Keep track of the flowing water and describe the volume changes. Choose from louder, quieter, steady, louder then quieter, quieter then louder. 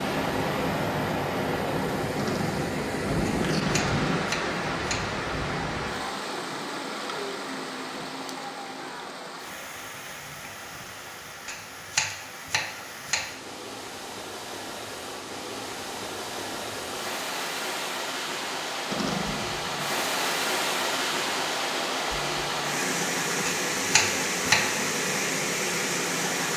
quieter then louder.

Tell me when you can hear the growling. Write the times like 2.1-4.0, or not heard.
2.1-4.2, 18.9-19.9.